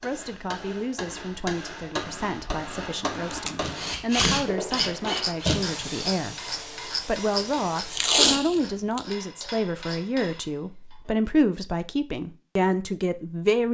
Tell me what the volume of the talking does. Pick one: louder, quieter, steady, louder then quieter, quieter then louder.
louder.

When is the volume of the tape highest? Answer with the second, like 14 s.
8 s.